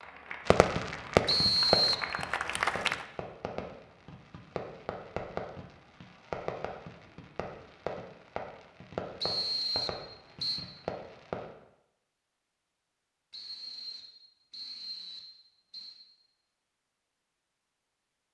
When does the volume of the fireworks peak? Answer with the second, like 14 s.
1 s.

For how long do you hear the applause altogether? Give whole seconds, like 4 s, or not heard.
3 s.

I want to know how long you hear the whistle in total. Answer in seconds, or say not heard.
5 s.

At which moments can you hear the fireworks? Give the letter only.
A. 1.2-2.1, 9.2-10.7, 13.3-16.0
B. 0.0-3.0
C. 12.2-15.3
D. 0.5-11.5
D.